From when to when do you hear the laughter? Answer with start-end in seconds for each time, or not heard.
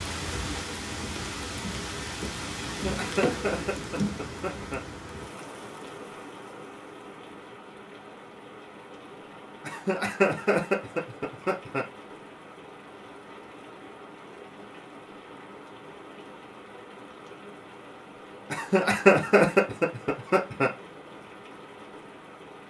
2.6-4.8, 9.6-11.8, 18.5-20.7.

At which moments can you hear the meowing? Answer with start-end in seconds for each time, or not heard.
not heard.